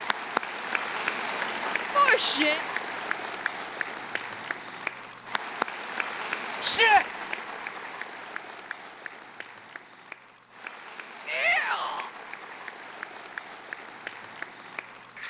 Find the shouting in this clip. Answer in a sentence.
You can hear the shouting from 1.9 to 2.6 s, from 6.6 to 7.0 s and from 11.2 to 12.1 s.